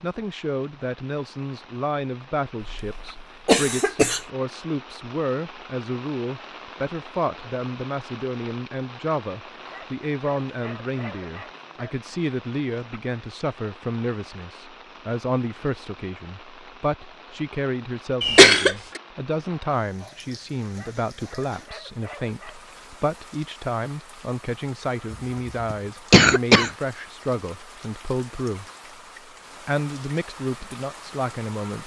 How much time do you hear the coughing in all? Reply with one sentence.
You can hear the coughing for 4 seconds altogether.